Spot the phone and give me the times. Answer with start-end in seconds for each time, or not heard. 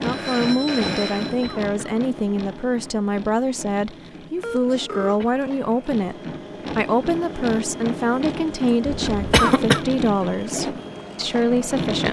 0.0-1.6, 4.4-5.2, 8.8-9.5.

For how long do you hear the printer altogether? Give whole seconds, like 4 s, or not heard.
12 s.